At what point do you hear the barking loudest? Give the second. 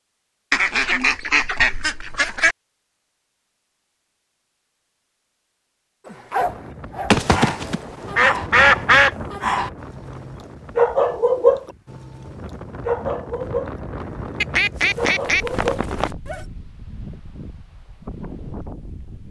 11 s.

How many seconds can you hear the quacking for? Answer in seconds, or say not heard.
6 s.